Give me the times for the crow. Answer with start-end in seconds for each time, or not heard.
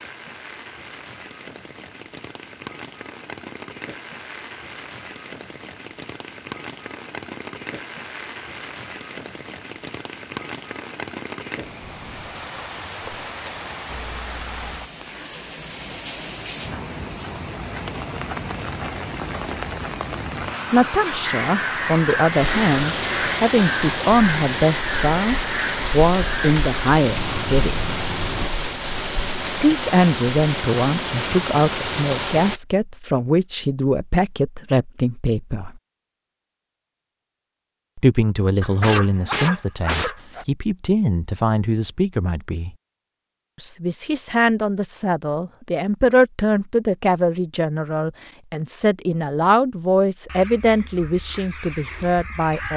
21.2-28.5, 50.2-52.7.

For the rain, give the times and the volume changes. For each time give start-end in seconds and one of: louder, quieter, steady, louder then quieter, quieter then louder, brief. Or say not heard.
0.0-32.6 louder.